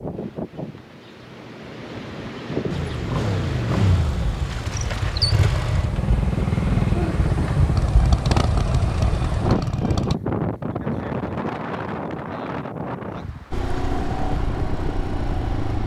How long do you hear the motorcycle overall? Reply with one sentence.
The motorcycle can be heard for 10 seconds in total.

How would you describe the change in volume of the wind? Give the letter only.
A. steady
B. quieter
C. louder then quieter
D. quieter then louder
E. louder
C.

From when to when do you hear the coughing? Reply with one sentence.
You can't hear the coughing here.